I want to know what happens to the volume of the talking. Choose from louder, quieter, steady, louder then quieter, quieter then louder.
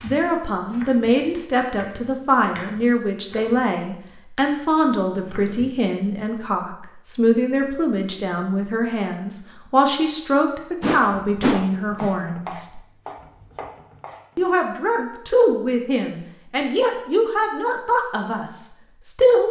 steady.